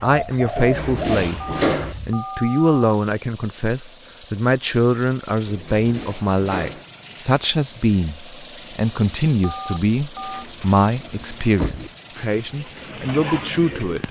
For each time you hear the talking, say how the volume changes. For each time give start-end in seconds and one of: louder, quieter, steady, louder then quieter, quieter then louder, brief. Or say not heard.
0.0-1.4 brief
2.0-14.0 steady.